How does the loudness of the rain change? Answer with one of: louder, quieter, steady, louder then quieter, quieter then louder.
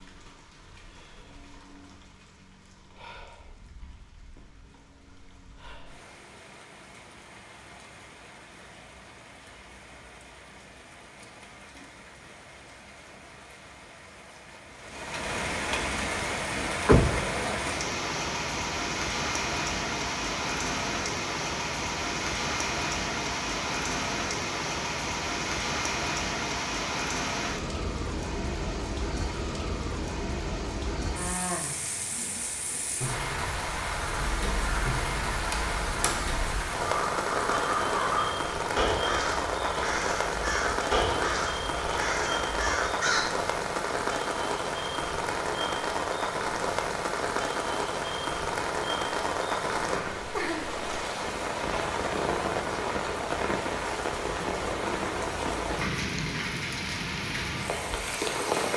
louder.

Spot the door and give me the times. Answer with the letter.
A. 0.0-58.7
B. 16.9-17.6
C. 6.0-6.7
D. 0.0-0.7
B.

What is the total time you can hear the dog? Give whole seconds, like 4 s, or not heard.
not heard.